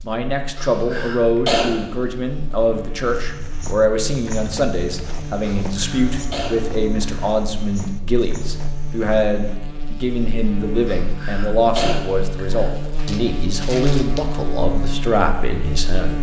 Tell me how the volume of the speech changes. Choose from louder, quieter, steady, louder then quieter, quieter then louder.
steady.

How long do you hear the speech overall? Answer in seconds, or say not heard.
16 s.